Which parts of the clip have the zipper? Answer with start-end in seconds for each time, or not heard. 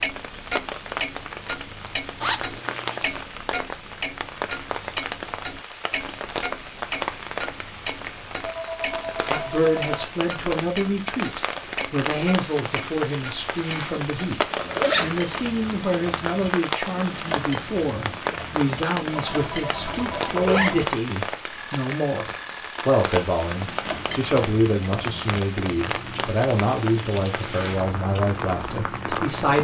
2.2-3.2, 14.3-15.4, 20.1-20.8.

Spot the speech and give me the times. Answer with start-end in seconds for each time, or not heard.
9.3-29.5.